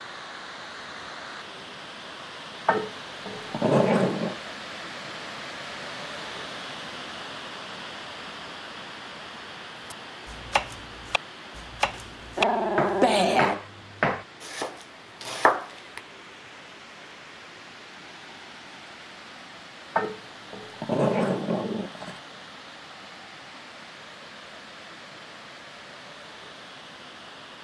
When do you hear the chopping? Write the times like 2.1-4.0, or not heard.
9.9-16.0.